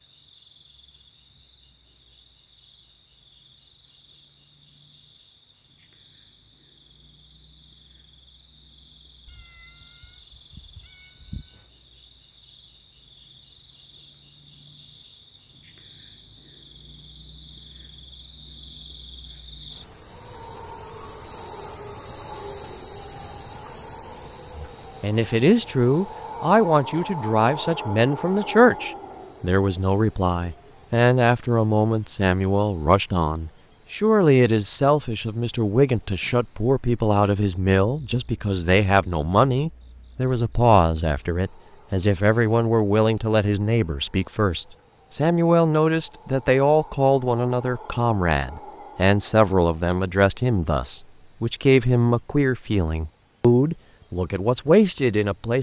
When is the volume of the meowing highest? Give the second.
11 s.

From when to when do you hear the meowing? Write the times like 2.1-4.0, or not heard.
9.2-11.7.